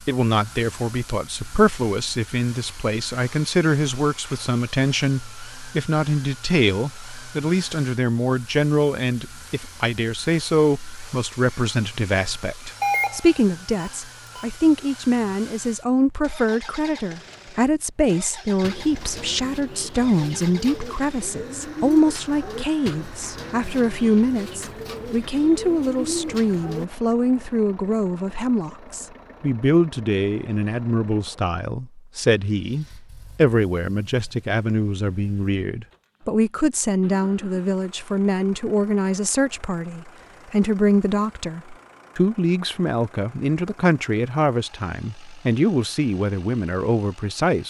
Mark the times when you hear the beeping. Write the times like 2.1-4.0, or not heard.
12.8-14.4.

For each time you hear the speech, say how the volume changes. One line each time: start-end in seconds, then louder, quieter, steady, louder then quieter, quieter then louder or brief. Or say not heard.
0.1-47.6 steady.